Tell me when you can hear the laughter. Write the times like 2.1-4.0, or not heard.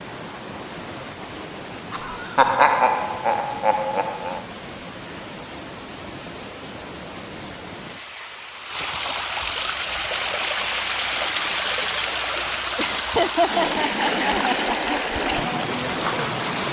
1.9-4.4, 12.8-14.9.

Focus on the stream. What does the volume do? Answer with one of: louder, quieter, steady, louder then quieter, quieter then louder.
louder.